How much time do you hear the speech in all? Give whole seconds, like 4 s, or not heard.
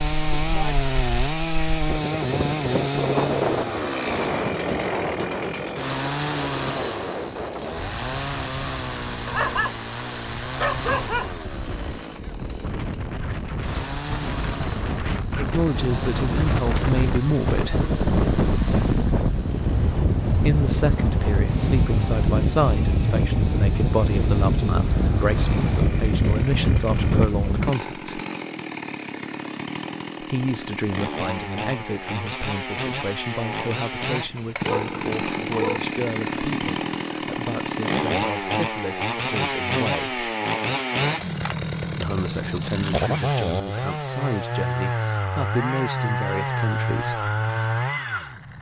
26 s.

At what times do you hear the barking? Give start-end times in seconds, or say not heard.
9.2-9.8, 10.6-11.3, 34.6-35.8.